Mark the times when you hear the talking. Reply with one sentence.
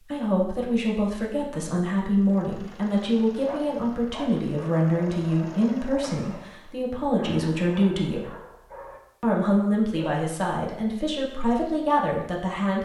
You can hear the talking from 0.1 to 8.2 s and from 9.2 to 12.8 s.